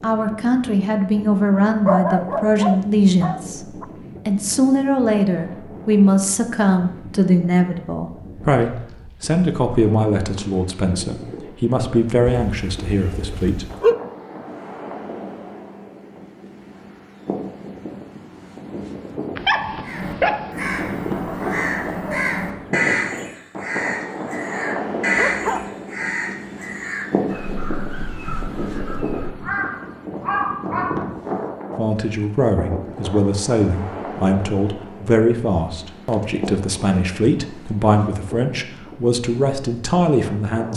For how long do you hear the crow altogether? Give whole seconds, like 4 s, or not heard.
11 s.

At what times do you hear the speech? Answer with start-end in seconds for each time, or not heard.
0.0-13.7, 31.8-40.7.